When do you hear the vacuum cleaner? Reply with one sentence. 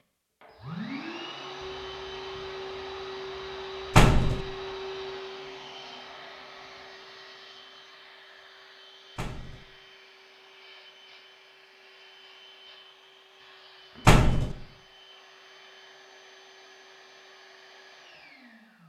The vacuum cleaner can be heard from 0.4 to 18.8 s.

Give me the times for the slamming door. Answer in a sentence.
You can hear the slamming door from 4.0 to 4.4 s, from 9.2 to 9.7 s and from 14.1 to 14.6 s.